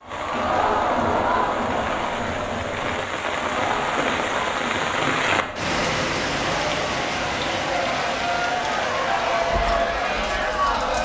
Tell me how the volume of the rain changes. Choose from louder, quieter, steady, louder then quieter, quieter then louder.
louder then quieter.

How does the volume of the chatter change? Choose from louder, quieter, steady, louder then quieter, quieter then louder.
quieter then louder.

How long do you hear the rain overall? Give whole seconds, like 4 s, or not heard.
11 s.